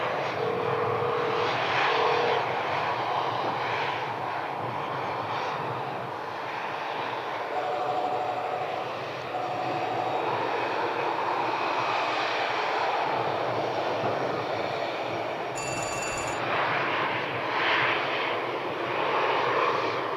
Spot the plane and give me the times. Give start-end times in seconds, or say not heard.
0.0-20.1.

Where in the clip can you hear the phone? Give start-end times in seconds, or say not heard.
0.3-2.4, 7.5-10.1, 15.6-16.4.